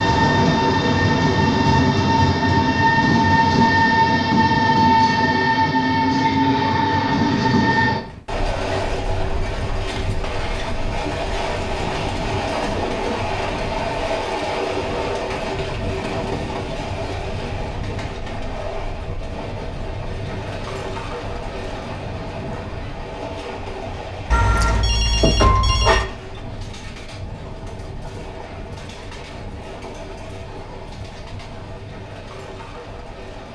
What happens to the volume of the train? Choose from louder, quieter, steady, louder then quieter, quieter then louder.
quieter.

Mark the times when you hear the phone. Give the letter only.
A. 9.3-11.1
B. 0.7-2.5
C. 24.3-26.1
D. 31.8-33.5
C.